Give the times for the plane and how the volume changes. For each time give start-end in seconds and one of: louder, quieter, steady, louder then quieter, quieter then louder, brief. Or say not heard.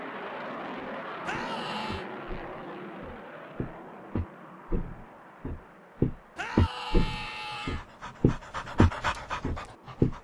0.0-10.1 quieter.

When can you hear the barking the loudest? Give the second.
9 s.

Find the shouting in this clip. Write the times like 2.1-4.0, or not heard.
1.2-2.0, 6.3-7.8.